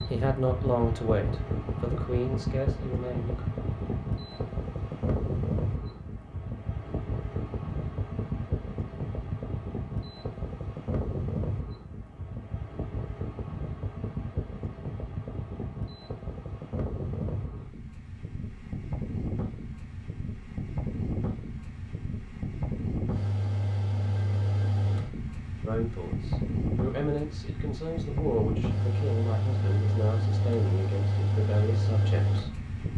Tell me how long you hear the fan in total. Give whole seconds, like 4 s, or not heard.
33 s.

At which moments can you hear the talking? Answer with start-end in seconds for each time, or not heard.
0.1-3.4, 25.6-32.9.